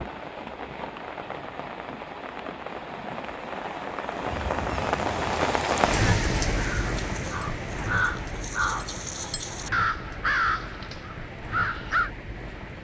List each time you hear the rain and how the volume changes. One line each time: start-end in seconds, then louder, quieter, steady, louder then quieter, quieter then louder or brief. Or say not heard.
0.0-12.7 louder then quieter.